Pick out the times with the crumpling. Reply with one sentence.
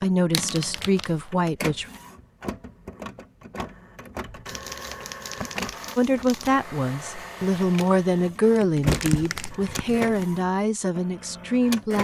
The crumpling can be heard from 0.3 to 1.2 s, from 4.5 to 6.5 s and from 8.6 to 10.2 s.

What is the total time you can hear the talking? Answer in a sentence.
You can hear the talking for 8 seconds altogether.